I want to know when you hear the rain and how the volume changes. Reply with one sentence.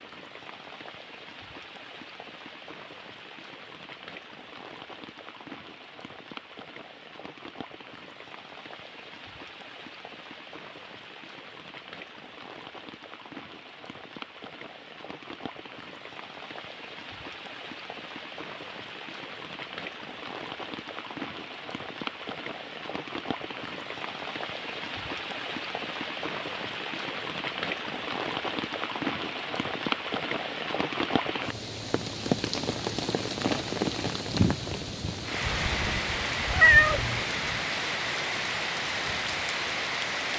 You can hear the rain from 0.0 to 40.3 s, getting louder.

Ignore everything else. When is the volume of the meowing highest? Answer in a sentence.
The loudest moment of the meowing is at 37 seconds.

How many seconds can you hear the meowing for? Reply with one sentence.
You can hear the meowing for 2 seconds altogether.